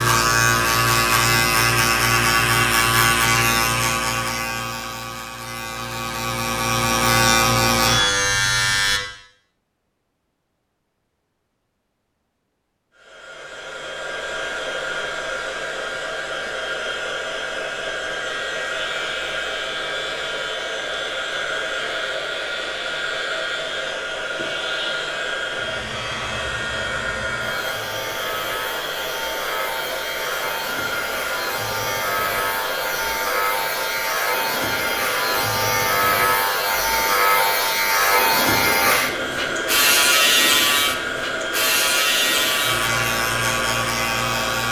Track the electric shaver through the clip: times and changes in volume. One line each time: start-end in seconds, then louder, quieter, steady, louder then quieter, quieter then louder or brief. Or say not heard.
0.0-9.0 quieter then louder
18.3-44.6 louder.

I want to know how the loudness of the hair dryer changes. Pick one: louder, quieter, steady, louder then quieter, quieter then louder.
steady.